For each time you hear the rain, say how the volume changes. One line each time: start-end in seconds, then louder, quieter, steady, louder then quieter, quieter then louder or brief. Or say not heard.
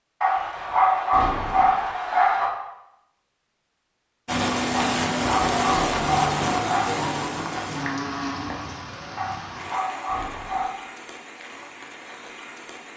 4.2-12.9 quieter.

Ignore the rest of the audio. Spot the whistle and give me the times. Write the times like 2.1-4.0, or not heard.
not heard.